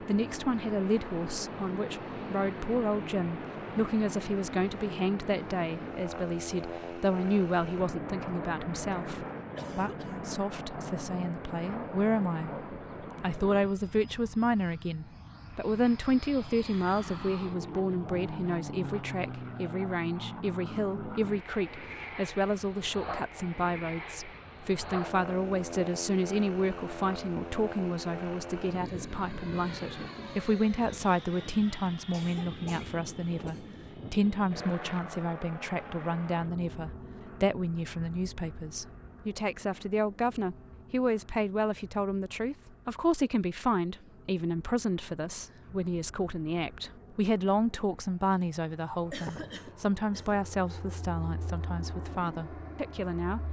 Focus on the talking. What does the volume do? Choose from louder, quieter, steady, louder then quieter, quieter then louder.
steady.